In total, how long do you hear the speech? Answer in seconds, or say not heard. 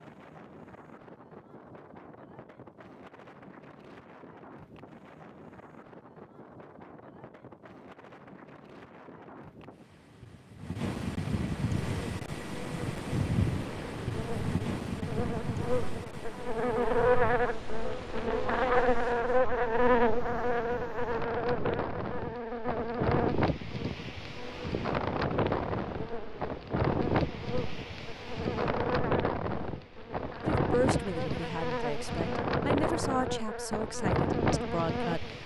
5 s.